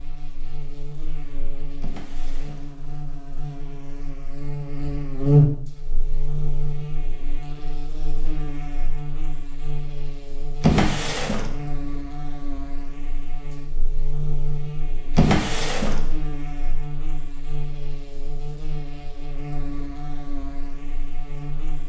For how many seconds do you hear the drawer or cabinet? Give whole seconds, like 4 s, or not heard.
3 s.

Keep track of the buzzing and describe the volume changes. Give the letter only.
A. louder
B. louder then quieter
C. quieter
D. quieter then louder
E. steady
B.